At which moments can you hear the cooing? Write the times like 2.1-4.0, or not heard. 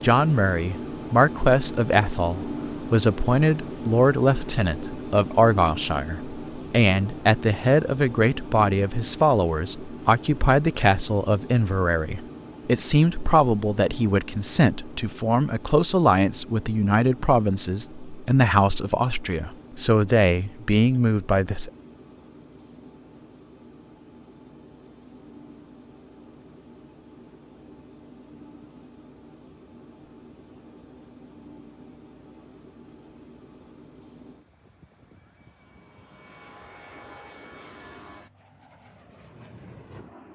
not heard.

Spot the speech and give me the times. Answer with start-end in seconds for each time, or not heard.
0.0-21.7.